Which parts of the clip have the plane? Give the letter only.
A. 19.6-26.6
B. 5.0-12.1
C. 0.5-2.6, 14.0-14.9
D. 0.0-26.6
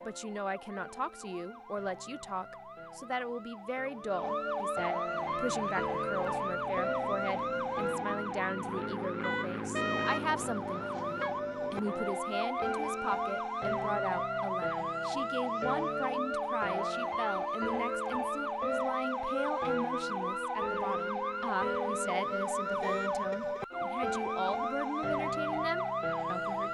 B.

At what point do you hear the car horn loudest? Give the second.
10 s.